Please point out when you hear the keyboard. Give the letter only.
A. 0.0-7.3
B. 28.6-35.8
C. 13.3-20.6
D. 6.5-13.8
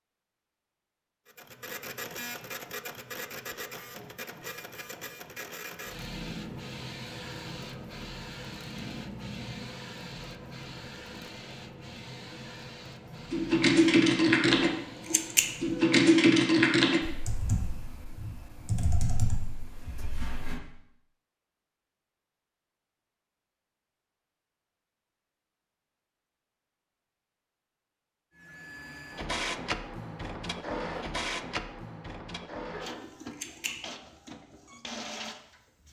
C.